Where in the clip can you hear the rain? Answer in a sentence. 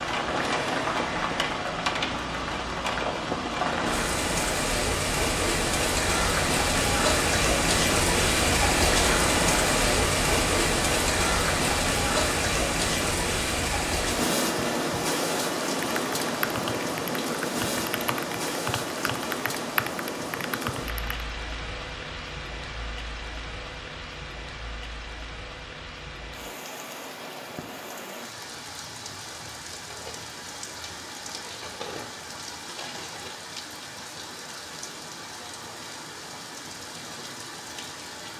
You can hear the rain from 0.0 to 38.3 s.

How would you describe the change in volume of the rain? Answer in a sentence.
The volume of the rain goes down.